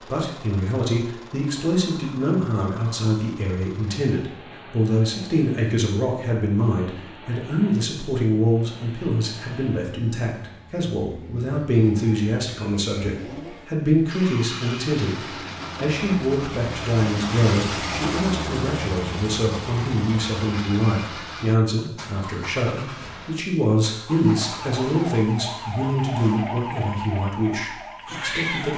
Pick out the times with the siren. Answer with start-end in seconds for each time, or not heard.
24.1-28.7.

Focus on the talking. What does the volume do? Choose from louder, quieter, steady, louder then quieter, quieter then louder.
steady.